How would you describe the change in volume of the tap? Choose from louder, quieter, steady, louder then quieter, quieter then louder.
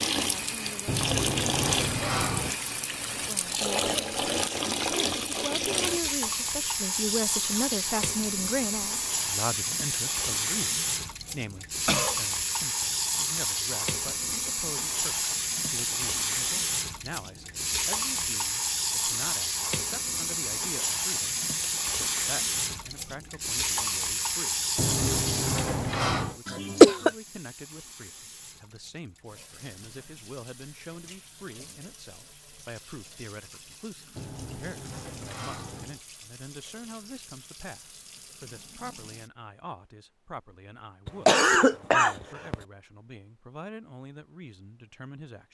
quieter.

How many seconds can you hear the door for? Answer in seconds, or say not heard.
5 s.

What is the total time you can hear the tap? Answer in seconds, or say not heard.
39 s.